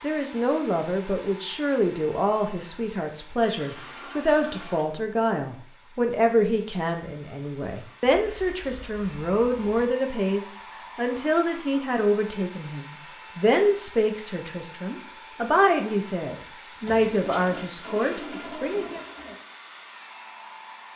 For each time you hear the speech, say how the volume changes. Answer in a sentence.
The speech can be heard from 0.0 to 19.0 s, at a steady volume.